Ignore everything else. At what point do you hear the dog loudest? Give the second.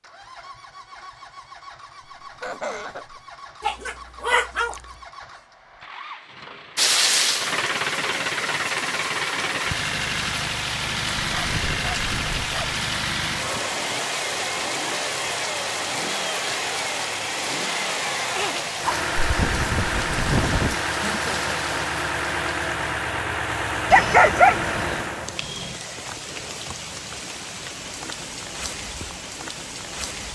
24 s.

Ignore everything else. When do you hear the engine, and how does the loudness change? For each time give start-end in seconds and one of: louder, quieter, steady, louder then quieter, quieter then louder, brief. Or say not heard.
0.0-25.4 louder.